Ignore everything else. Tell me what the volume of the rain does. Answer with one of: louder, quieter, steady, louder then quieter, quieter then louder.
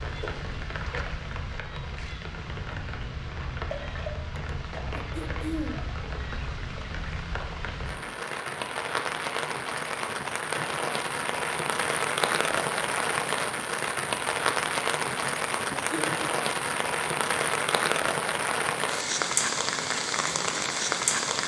louder.